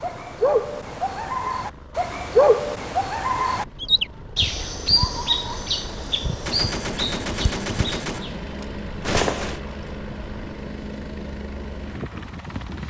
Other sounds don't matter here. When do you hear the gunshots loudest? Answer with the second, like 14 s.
9 s.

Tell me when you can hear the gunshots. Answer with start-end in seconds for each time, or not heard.
6.5-9.6.